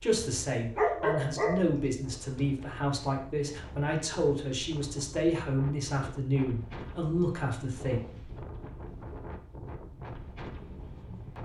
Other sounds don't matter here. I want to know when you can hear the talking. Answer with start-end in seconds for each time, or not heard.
0.0-8.0.